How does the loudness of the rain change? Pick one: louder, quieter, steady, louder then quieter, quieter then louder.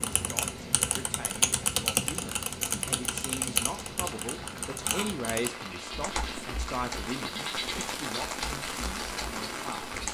louder.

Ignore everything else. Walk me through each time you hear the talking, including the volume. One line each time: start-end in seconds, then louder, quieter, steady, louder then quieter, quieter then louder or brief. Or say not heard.
0.2-9.9 louder then quieter.